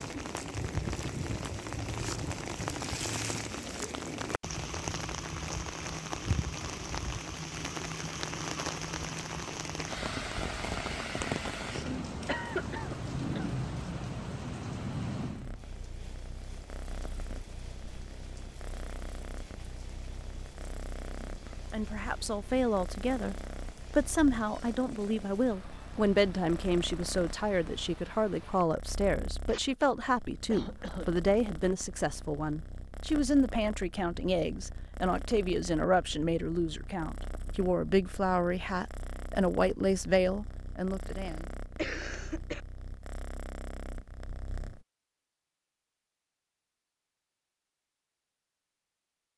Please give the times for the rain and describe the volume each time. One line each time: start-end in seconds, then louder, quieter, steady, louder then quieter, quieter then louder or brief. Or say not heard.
0.0-28.6 quieter.